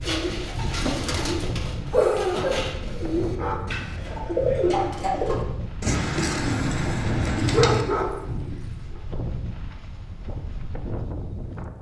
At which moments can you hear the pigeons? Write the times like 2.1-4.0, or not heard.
0.0-7.8.